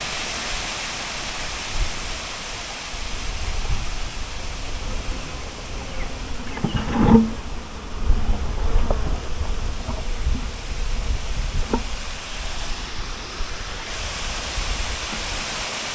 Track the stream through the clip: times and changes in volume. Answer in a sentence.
The stream can be heard from 0.0 to 15.8 s, getting quieter then louder.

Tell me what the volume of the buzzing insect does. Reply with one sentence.
The loudness of the buzzing insect goes up, then down.